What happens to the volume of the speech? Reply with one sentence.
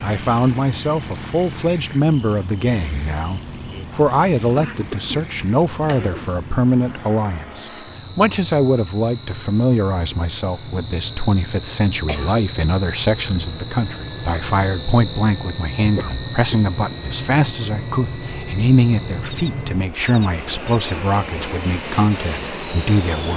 The loudness of the speech stays about the same.